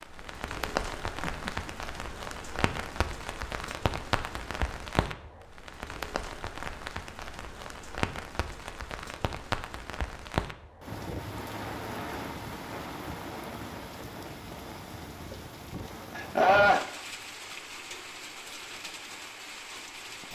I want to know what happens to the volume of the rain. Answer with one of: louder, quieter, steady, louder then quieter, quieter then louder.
quieter.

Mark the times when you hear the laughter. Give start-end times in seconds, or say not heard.
0.7-1.7, 16.1-16.9.